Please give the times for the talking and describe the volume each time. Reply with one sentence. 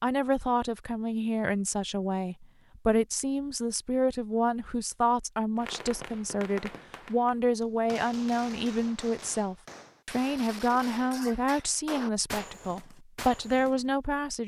You can hear the talking from 0.0 to 14.4 s, at a steady volume.